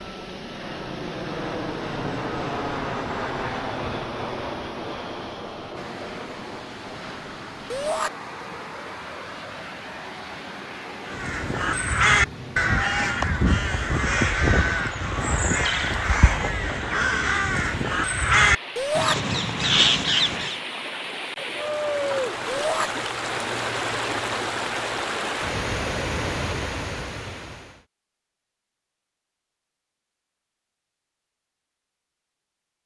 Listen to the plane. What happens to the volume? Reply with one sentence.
The volume of the plane goes down.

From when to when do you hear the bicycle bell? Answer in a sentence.
You can't hear the bicycle bell here.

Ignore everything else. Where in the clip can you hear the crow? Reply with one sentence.
You can hear the crow from 11.1 to 20.6 s.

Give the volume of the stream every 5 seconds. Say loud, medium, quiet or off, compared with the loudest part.
quiet, quiet, medium, medium, loud, loud, off.